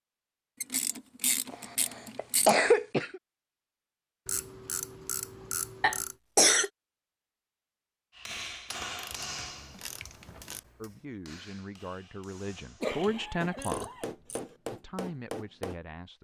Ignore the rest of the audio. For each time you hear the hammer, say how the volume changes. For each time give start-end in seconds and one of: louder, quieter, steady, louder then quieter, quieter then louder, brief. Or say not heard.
8.2-15.8 quieter then louder.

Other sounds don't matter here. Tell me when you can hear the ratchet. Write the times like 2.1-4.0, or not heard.
0.6-2.5, 4.2-6.2, 8.7-10.6, 12.4-14.4.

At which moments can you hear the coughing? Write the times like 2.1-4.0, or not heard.
1.5-3.2, 5.8-6.7, 12.8-14.1.